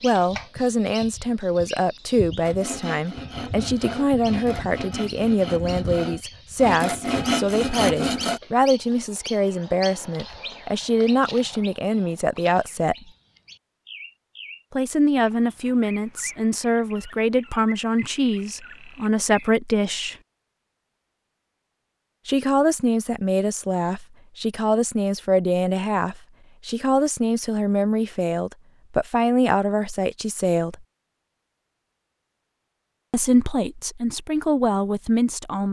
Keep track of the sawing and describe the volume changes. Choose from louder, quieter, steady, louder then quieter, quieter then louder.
louder.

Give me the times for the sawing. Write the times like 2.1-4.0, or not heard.
2.4-8.4.